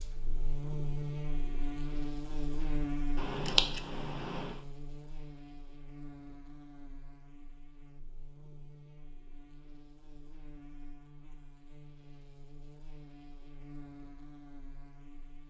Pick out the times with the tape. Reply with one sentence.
The tape can't be heard in this clip.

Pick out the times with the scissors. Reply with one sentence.
The scissors can be heard from 3.1 to 4.6 s.